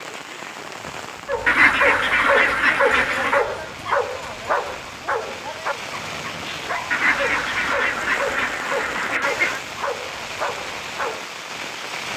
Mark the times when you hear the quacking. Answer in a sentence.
The quacking can be heard from 1.4 to 3.5 s and from 6.9 to 9.6 s.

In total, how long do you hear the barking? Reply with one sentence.
The barking can be heard for 10 seconds in total.